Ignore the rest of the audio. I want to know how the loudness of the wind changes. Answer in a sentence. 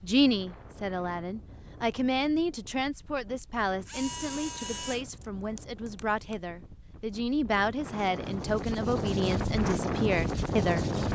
The volume of the wind goes up.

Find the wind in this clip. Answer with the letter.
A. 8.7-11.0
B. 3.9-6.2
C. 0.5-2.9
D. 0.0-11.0
D.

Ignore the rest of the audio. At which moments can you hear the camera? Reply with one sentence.
You can hear the camera from 3.9 to 6.2 s.